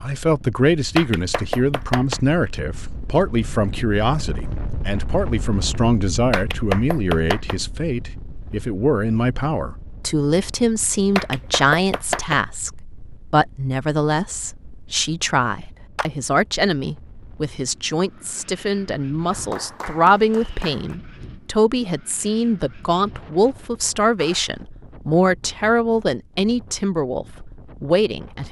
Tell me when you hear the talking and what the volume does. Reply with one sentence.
You can hear the talking from 0.0 to 28.4 s, at a steady volume.